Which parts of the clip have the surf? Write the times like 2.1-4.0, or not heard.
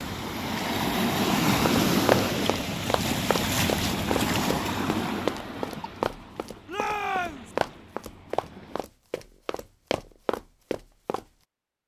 0.0-8.8.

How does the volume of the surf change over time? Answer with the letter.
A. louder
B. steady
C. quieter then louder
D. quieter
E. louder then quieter
D.